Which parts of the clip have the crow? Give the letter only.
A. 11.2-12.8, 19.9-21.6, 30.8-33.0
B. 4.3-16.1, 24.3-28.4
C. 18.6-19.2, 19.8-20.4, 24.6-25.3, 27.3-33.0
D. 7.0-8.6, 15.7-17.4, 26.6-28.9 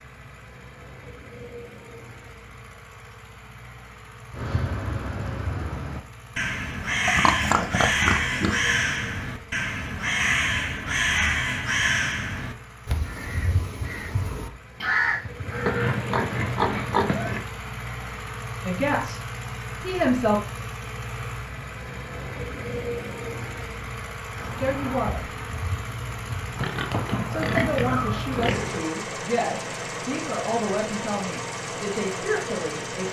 B.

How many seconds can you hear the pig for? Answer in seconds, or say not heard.
6 s.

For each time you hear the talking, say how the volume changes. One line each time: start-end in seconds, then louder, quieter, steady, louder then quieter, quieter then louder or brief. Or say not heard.
18.6-19.2 brief
19.8-20.4 brief
24.6-25.3 brief
27.3-33.0 steady.